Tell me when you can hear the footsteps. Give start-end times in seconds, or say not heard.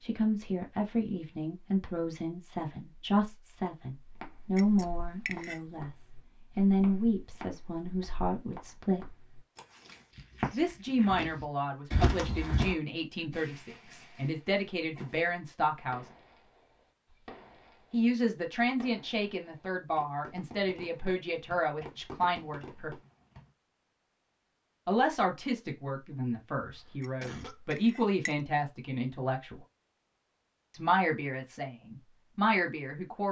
4.0-12.8.